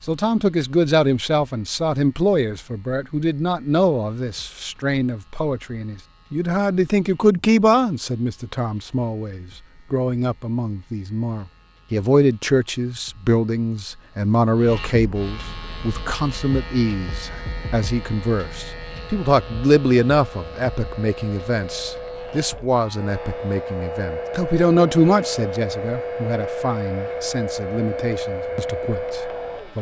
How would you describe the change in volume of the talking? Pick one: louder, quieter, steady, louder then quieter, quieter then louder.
steady.